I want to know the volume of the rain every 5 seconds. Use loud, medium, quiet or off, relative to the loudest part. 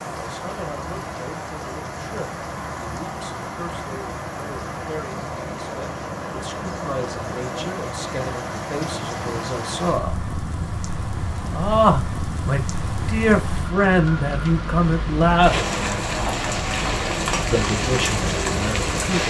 medium, medium, medium, loud.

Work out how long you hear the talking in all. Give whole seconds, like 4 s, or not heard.
16 s.